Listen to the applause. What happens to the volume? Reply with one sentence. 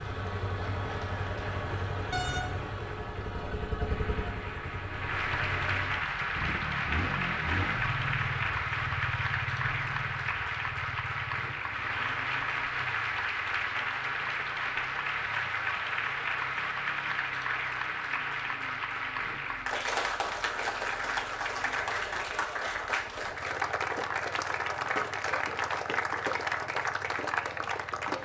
The loudness of the applause goes up.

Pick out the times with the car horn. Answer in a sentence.
The car horn can be heard from 2.1 to 2.7 s.